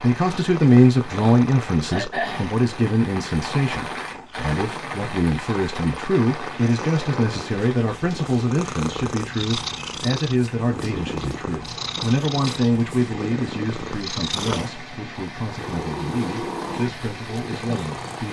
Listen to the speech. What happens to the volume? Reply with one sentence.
The volume of the speech goes down.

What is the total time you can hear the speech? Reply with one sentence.
The speech can be heard for 18 seconds in total.